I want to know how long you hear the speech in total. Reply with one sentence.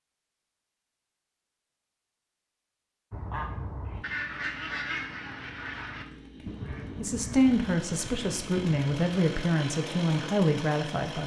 The speech can be heard for 4 seconds in total.